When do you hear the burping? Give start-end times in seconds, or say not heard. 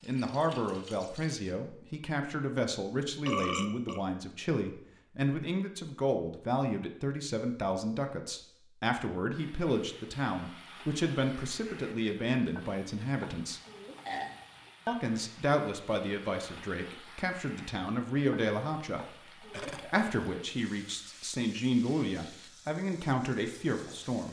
3.2-4.0, 13.7-14.6, 19.5-20.1.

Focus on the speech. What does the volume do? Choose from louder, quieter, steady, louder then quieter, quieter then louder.
steady.